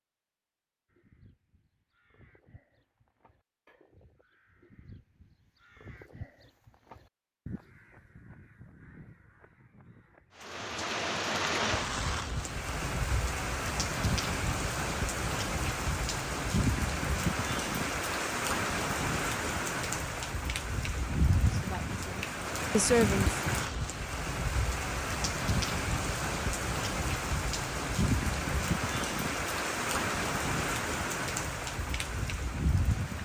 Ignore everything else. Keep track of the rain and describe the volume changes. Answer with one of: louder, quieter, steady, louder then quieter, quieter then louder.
steady.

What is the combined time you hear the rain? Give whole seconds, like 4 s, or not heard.
23 s.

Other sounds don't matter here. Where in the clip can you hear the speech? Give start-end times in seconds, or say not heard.
21.5-23.4.